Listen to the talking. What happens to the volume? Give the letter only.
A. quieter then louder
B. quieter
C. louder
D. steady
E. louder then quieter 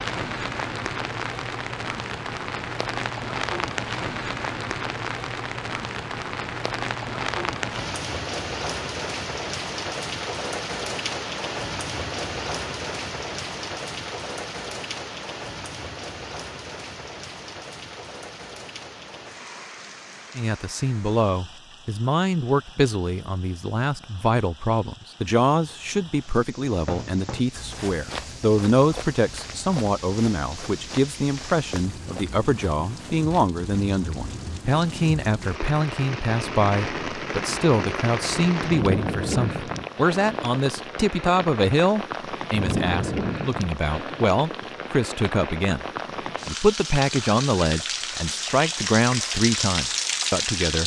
D.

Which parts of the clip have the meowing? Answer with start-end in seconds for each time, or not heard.
not heard.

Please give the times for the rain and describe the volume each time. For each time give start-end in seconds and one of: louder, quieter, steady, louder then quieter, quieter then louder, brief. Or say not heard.
0.0-50.8 quieter then louder.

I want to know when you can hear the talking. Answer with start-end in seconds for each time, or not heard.
20.4-45.9, 46.5-50.8.